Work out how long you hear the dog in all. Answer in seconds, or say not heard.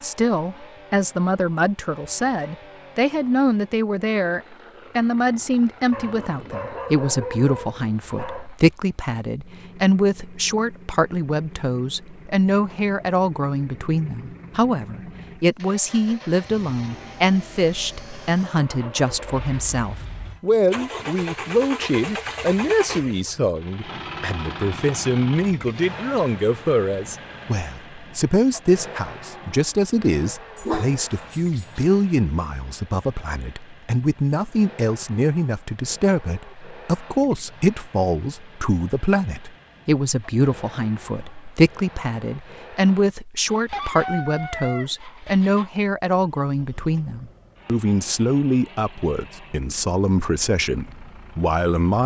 5 s.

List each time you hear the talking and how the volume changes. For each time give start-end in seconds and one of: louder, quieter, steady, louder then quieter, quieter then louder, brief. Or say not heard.
0.0-52.0 steady.